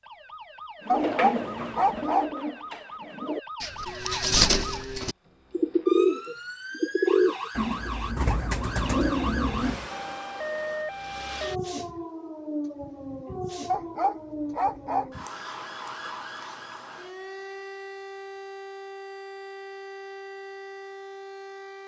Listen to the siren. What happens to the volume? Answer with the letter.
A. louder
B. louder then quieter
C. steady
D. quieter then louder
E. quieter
B.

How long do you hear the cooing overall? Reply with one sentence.
You can hear the cooing for 9 seconds altogether.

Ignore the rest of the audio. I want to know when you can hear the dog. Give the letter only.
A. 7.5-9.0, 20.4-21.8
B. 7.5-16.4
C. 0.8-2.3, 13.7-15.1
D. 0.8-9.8
C.